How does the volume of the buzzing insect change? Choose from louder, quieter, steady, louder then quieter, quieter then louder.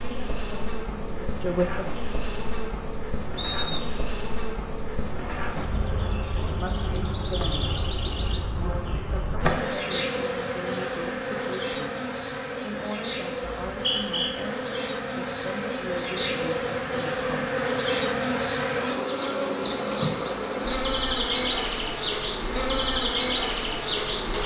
louder.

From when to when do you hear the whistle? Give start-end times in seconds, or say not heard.
3.4-4.0, 13.7-14.3.